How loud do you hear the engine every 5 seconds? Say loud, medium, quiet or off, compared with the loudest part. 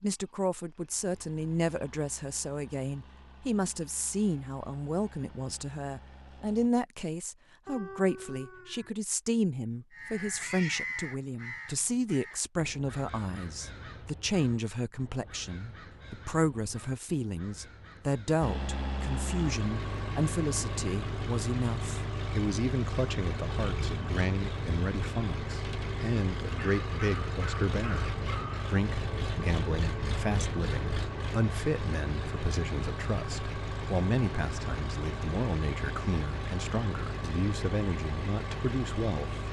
quiet, quiet, off, loud, loud, loud, loud, loud.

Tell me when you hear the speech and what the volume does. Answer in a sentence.
The speech can be heard from 0.0 to 39.4 s, at a steady volume.